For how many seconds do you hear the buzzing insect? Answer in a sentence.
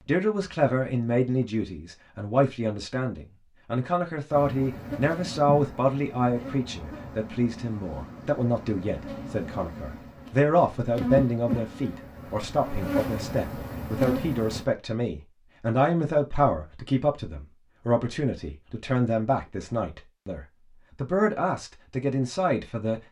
The buzzing insect can be heard for 10 seconds in total.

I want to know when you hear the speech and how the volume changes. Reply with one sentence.
The speech can be heard from 0.1 to 23.0 s, at a steady volume.